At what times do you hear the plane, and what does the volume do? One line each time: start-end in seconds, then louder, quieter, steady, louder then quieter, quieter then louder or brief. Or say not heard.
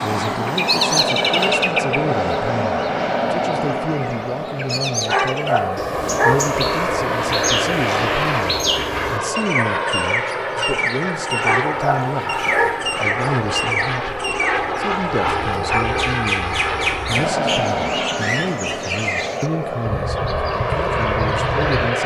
0.0-22.0 steady.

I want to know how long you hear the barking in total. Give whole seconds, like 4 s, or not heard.
3 s.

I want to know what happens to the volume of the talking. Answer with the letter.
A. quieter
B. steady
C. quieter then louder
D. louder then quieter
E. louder
B.